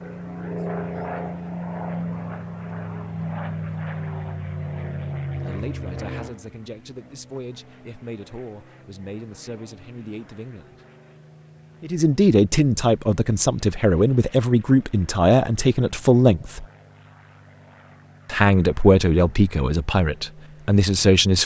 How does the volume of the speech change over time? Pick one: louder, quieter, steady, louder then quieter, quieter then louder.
louder.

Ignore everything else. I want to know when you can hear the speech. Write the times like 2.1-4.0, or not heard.
5.4-10.8, 11.8-16.6, 18.2-21.4.